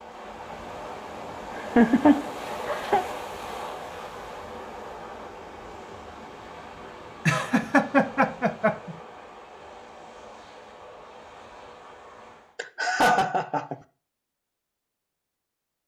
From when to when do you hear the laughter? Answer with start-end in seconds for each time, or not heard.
1.6-3.0, 7.2-8.9, 12.6-13.8.